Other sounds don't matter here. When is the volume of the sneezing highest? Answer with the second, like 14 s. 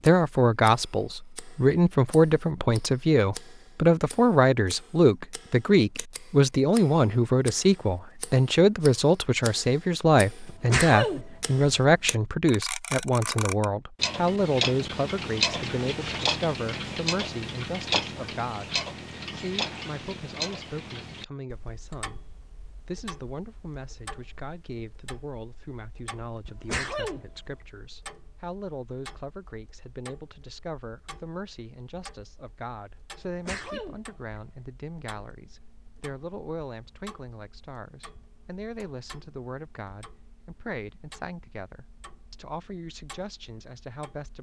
11 s.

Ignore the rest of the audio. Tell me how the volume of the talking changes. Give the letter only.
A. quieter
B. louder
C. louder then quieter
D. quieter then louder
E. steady
A.